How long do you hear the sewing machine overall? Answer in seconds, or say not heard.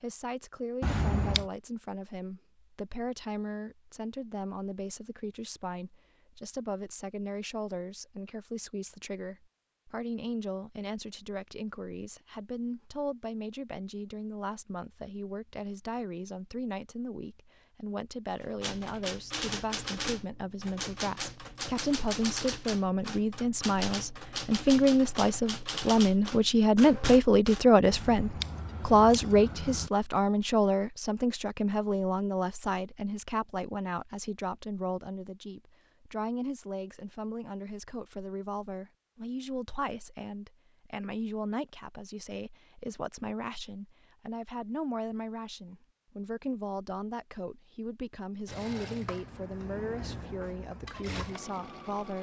4 s.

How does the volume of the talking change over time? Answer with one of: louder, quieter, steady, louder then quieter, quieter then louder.
louder then quieter.